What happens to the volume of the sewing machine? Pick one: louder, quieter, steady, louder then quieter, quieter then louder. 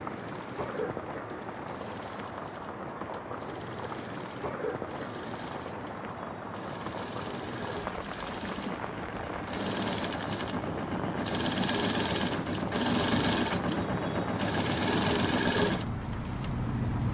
louder.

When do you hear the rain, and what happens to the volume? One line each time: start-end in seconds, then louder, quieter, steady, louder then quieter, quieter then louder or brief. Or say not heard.
0.0-17.0 steady.